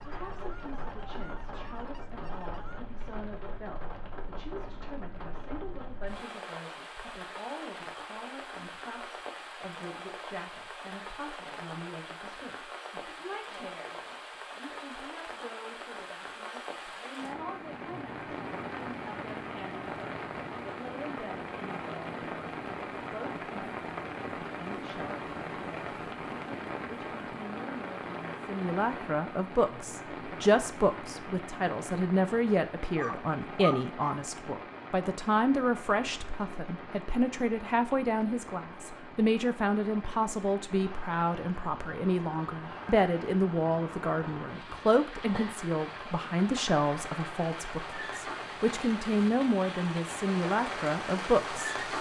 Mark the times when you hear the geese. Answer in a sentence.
You can hear the geese from 0.0 to 2.8 s.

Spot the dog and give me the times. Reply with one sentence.
You can hear the dog from 32.8 to 34.2 s.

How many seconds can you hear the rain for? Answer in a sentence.
The rain can be heard for 52 seconds in total.